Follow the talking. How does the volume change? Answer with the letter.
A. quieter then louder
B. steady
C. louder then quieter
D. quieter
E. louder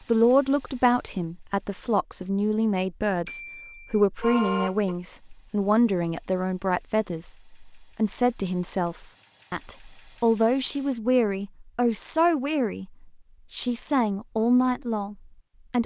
B.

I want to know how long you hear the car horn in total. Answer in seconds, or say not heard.
2 s.